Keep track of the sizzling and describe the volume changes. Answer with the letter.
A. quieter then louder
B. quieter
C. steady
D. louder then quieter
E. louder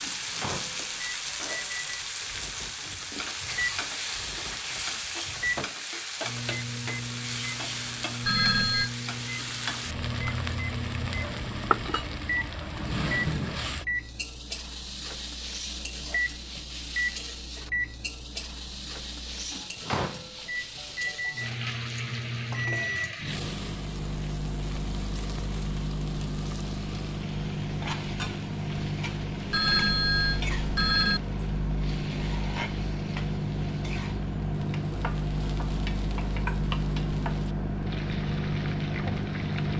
B.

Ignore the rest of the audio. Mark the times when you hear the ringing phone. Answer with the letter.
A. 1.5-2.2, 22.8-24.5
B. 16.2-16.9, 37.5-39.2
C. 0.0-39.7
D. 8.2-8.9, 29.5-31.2
D.